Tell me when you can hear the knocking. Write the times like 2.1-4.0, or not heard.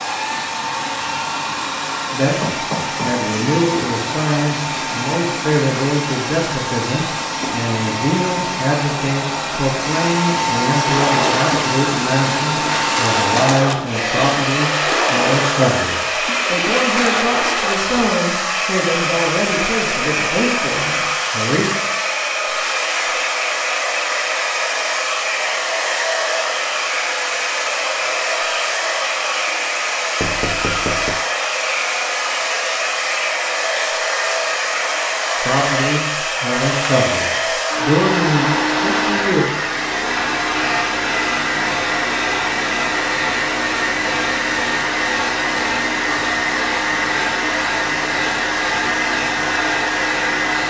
2.2-3.2, 30.2-31.2.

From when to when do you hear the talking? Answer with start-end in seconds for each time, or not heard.
2.1-21.7, 35.4-39.5.